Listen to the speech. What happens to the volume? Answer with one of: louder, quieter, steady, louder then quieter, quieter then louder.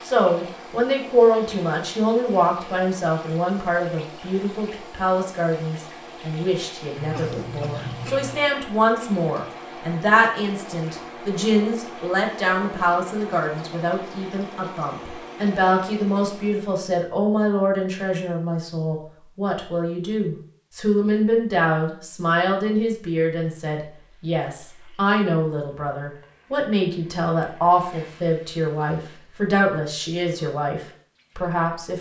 steady.